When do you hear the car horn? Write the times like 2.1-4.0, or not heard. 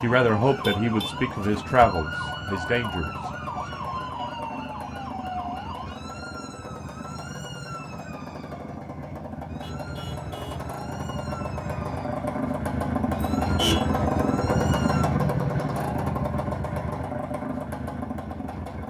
0.5-1.6, 9.6-10.7, 13.4-13.8.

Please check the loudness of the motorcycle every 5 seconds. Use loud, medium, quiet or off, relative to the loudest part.
medium, medium, loud, loud.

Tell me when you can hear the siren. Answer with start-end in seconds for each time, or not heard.
0.0-15.1.